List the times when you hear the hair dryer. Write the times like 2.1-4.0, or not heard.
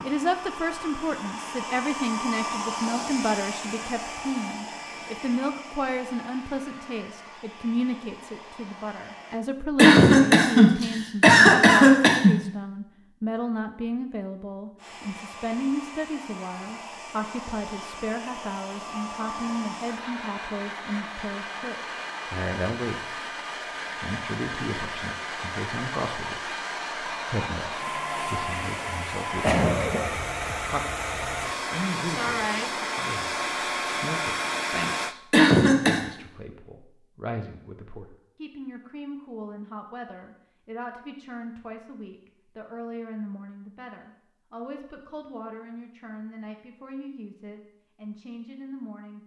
0.0-9.4, 14.8-35.1.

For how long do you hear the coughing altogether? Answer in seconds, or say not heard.
4 s.